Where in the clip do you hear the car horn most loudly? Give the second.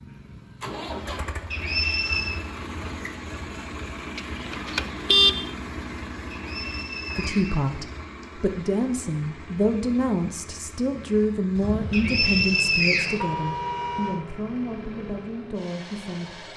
5 s.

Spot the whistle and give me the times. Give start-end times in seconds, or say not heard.
1.5-2.4, 6.3-8.2, 11.9-13.2.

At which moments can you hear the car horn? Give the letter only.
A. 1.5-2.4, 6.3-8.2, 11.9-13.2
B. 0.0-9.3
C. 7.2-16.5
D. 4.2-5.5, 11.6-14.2
D.